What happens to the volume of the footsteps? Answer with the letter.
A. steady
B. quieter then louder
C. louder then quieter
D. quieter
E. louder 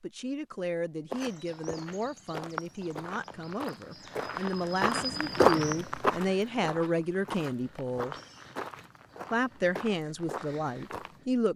C.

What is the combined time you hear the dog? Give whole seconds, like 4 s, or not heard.
not heard.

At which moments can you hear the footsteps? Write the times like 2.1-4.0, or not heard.
1.1-11.2.